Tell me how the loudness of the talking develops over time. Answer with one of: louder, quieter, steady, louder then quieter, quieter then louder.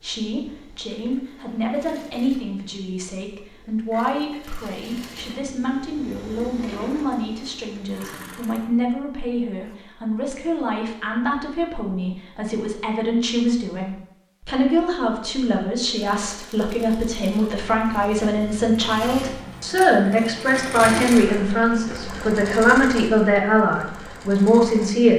louder.